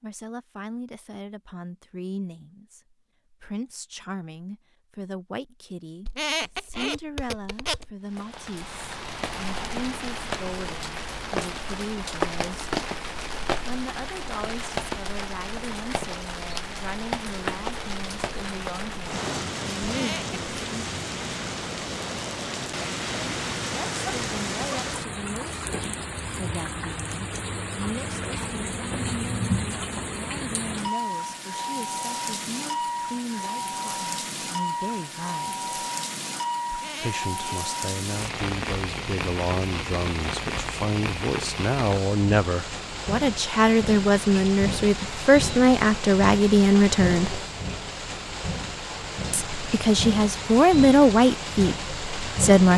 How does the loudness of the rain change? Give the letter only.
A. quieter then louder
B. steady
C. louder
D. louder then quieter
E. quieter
B.